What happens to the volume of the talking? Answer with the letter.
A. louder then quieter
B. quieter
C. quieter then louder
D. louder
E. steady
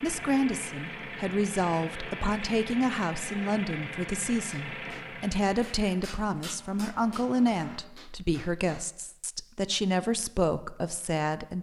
E.